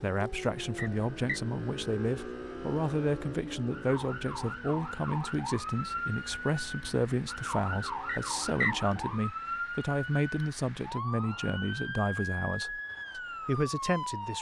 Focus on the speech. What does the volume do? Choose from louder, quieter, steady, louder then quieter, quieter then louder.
steady.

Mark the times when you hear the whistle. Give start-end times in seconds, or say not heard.
0.8-1.4, 8.1-8.8.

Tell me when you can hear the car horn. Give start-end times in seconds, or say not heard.
not heard.